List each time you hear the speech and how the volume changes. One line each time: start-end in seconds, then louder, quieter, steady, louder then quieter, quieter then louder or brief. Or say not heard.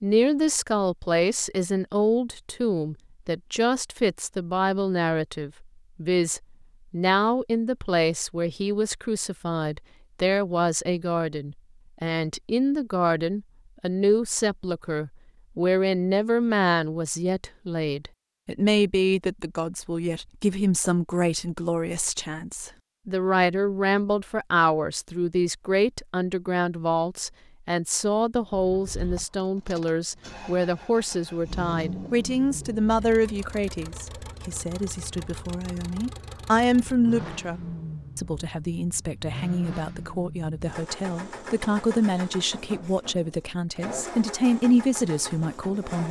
0.0-46.0 steady.